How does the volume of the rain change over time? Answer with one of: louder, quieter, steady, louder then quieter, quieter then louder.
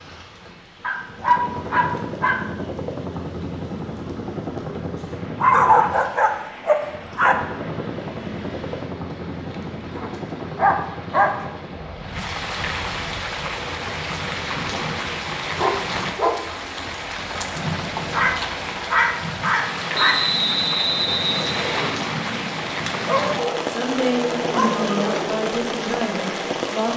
louder.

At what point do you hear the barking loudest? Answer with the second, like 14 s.
6 s.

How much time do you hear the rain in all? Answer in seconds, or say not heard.
27 s.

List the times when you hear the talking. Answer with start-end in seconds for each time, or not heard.
23.6-26.9.